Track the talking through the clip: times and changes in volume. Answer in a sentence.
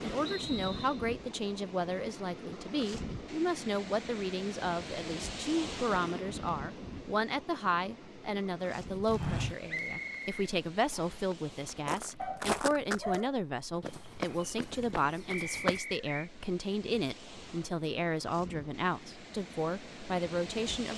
The talking can be heard from 0.0 to 20.9 s, at a steady volume.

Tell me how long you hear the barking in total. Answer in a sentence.
You can hear the barking for 2 seconds altogether.